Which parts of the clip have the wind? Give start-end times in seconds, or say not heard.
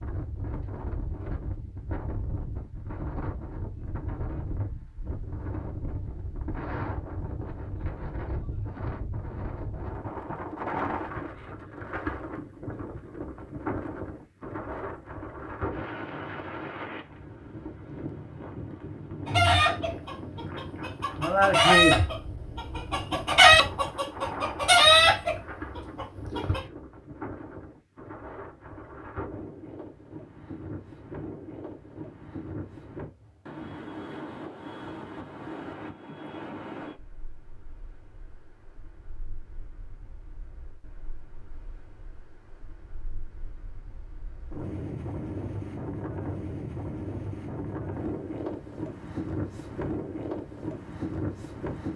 0.0-51.9.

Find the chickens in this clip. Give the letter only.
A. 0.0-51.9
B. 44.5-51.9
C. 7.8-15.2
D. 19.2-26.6
D.